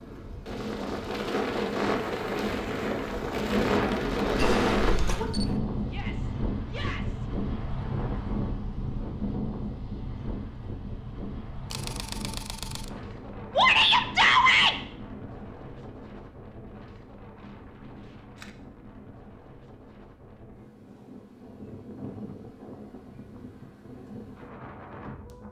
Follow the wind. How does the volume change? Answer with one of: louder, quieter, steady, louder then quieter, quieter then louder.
quieter.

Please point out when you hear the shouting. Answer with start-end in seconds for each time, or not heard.
5.8-7.2, 13.6-14.8.